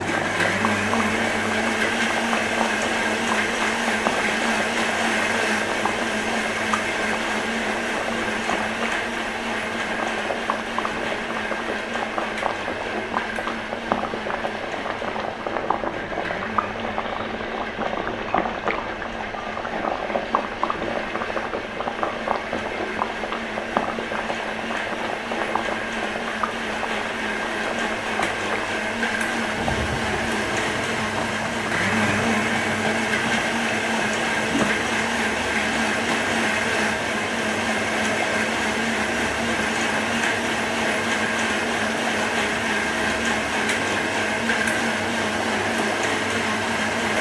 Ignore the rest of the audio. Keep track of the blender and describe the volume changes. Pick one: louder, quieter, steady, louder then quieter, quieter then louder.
quieter then louder.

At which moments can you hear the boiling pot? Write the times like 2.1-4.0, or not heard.
0.0-47.1.